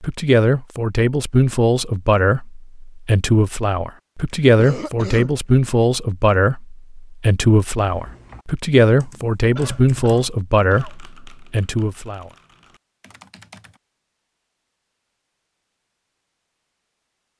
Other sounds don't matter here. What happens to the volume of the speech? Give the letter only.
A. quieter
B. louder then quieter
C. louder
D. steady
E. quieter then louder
D.